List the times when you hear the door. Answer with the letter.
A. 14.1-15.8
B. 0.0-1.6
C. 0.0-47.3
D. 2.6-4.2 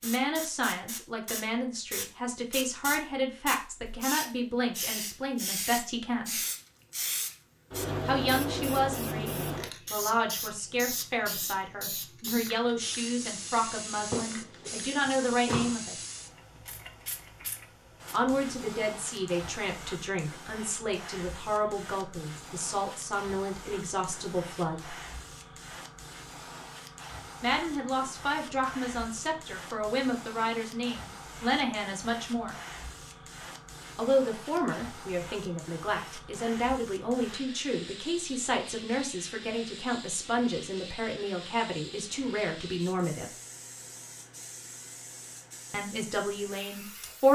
A.